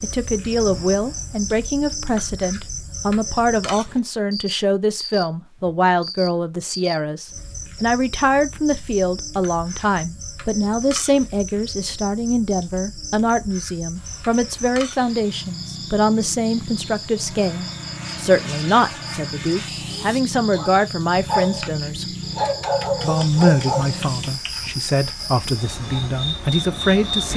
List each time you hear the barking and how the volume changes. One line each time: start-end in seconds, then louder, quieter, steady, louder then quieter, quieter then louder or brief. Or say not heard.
20.5-26.0 quieter.